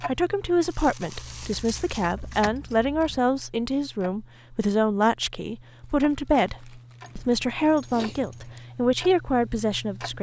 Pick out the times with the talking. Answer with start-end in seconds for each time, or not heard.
0.1-10.1.